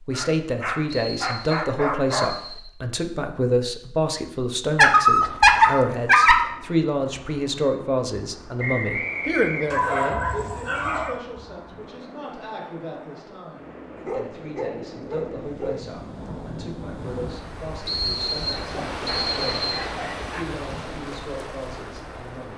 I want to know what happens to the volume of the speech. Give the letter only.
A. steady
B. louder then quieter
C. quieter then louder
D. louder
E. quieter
E.